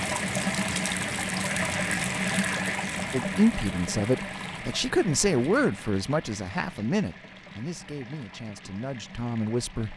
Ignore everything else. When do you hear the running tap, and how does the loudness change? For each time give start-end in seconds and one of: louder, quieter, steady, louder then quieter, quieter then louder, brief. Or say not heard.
0.0-9.9 quieter.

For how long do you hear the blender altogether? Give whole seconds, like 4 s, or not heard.
not heard.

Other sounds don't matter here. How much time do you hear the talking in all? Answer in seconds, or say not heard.
7 s.